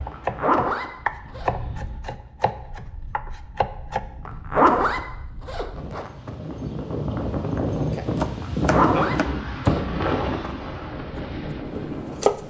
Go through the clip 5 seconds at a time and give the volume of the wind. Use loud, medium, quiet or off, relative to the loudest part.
quiet, loud, loud.